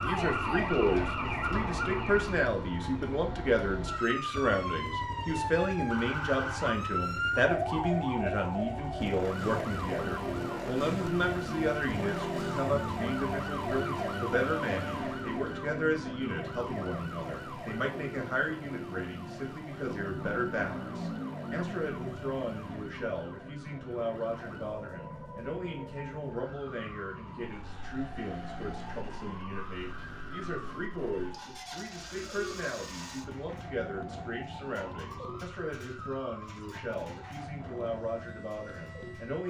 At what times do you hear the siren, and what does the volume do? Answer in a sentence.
You can hear the siren from 0.0 to 39.4 s, getting quieter.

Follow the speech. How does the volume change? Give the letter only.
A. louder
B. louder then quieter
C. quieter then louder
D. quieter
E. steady
D.